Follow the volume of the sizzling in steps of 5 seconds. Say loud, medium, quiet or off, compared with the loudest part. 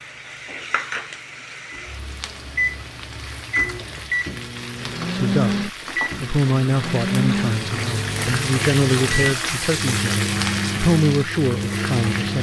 medium, loud, loud.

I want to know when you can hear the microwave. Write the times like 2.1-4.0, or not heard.
0.0-12.3.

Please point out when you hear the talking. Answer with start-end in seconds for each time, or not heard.
5.1-12.3.